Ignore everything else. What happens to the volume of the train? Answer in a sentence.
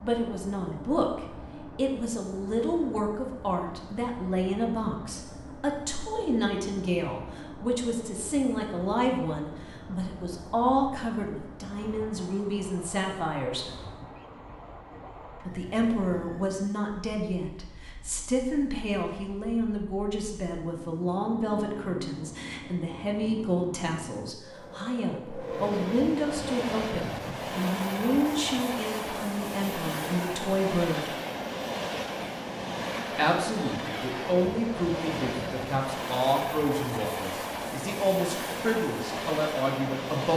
The loudness of the train goes up.